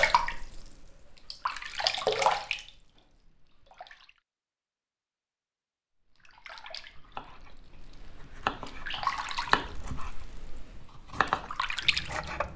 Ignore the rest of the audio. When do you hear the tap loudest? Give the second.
2 s.